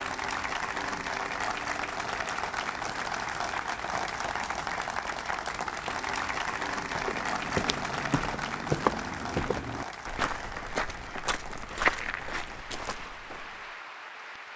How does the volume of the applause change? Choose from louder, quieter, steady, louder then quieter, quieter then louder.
quieter.